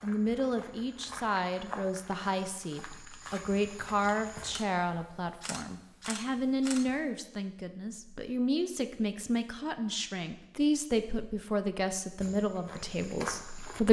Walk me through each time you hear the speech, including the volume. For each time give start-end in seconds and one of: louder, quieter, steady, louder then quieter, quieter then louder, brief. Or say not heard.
0.0-13.8 steady.